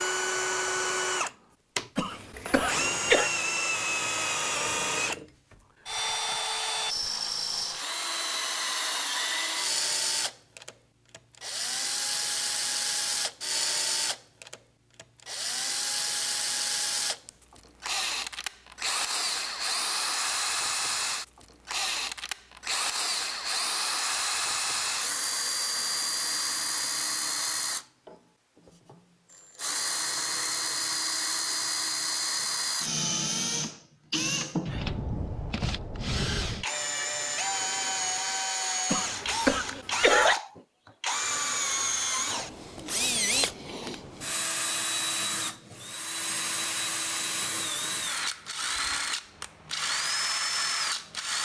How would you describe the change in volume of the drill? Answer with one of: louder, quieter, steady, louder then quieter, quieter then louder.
steady.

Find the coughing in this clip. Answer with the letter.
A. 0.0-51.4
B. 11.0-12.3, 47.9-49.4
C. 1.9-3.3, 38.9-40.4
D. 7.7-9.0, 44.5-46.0
C.